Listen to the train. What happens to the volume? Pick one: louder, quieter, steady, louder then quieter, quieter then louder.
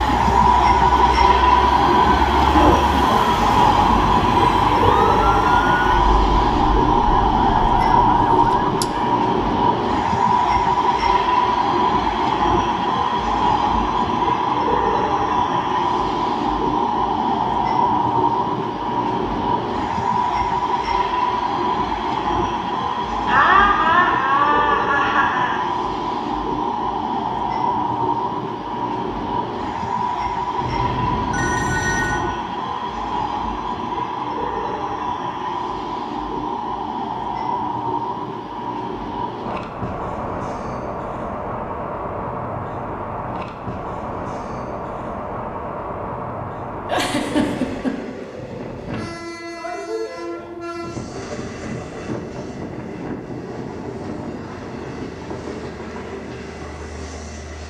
quieter.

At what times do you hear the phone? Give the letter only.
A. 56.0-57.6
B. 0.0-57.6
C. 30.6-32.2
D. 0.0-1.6
C.